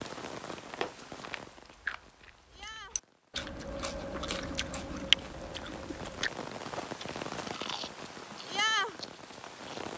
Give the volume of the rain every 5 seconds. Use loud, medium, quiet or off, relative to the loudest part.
medium, loud.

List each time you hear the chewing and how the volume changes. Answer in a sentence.
You can hear the chewing from 0.6 to 9.9 s, getting louder then quieter.